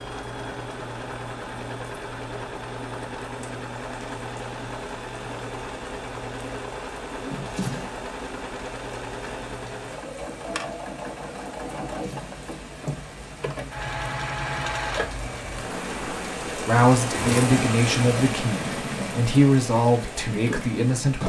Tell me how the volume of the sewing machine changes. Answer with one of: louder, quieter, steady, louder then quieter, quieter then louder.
steady.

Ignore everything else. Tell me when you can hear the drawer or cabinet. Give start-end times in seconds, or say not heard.
7.2-8.0, 11.7-13.1.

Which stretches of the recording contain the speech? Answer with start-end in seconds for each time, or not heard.
16.5-21.2.